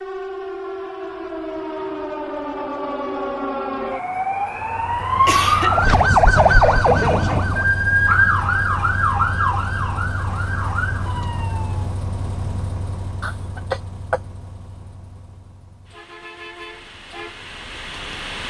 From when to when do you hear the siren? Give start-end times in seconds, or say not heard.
0.0-11.9.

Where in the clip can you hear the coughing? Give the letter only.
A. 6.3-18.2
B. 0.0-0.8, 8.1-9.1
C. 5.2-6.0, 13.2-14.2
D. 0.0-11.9
C.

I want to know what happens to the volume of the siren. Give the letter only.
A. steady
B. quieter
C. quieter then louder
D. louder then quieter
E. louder
D.